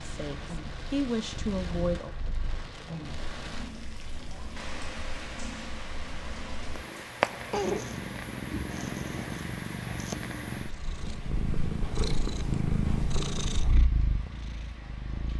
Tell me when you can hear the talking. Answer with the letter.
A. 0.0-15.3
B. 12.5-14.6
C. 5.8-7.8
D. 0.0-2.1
D.